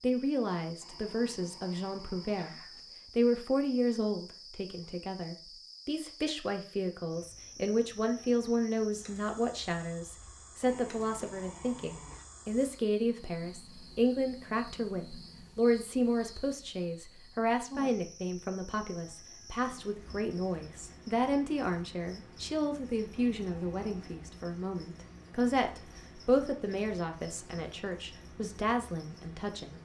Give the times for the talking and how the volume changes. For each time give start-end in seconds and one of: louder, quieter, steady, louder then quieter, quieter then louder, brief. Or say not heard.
0.0-29.8 steady.